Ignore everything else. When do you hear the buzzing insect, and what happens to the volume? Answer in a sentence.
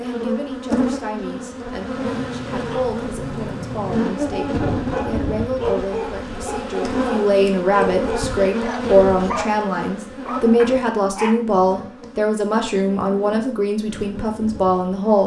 The buzzing insect can be heard from 0.0 to 15.2 s, getting quieter.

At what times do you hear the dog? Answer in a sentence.
The dog can be heard from 1.9 to 11.4 s.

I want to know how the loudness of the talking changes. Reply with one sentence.
The loudness of the talking goes up.